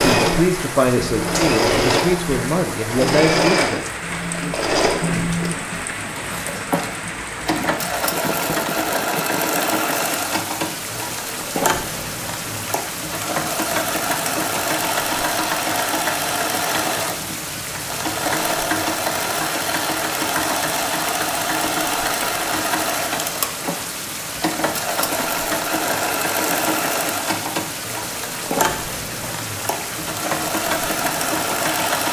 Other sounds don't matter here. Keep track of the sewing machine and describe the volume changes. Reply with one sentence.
The loudness of the sewing machine stays about the same.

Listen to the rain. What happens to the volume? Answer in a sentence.
The volume of the rain stays about the same.